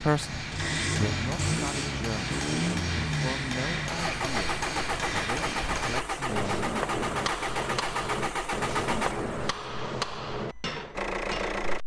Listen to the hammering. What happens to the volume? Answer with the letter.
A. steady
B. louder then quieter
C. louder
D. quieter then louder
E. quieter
A.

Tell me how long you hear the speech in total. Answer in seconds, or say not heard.
7 s.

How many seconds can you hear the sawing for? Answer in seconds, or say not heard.
not heard.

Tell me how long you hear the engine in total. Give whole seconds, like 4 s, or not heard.
12 s.